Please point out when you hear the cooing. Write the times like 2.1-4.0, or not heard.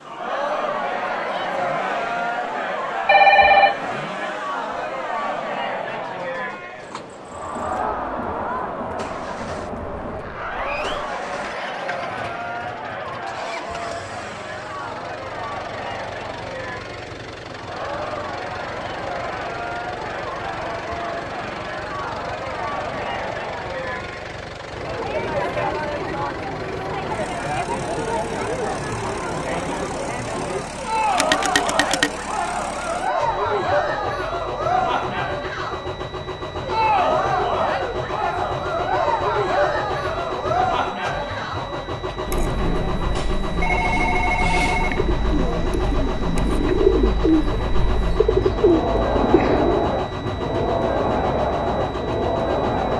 44.5-50.0.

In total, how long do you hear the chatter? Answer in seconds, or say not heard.
53 s.